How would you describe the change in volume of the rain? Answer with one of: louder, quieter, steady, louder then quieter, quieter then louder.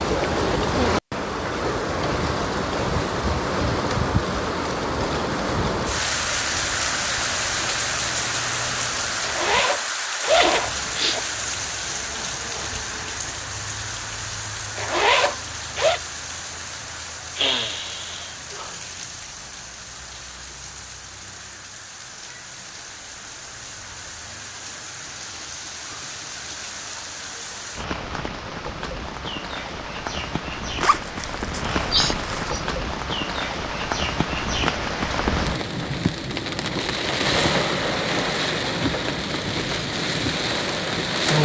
quieter then louder.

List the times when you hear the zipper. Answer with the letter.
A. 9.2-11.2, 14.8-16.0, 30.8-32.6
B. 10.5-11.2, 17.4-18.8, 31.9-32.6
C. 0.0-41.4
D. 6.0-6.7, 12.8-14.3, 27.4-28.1
A.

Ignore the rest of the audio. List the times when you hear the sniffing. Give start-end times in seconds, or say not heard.
10.5-11.2, 17.4-18.8, 31.9-32.6.